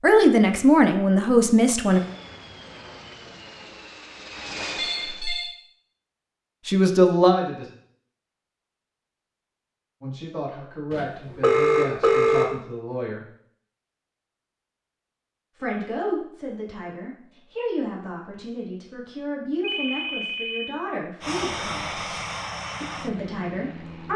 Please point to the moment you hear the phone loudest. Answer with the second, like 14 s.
12 s.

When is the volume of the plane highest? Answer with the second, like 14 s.
22 s.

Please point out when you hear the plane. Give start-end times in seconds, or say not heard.
1.9-5.3, 21.2-24.1.